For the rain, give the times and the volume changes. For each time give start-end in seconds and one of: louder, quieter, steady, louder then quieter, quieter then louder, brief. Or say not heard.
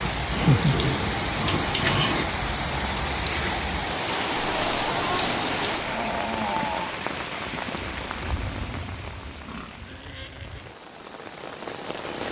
0.0-12.2 quieter.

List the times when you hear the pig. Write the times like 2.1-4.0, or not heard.
0.3-2.3, 4.5-6.2, 9.3-10.7.